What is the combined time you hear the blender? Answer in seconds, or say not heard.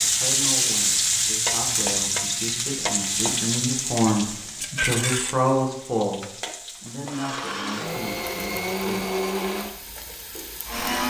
4 s.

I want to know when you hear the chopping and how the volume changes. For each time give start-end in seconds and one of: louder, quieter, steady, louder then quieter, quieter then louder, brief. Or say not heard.
not heard.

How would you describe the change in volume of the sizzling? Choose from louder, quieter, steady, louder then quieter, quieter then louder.
quieter.